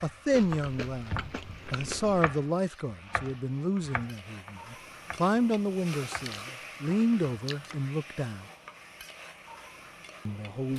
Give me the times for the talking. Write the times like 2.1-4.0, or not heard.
0.0-8.4, 10.2-10.7.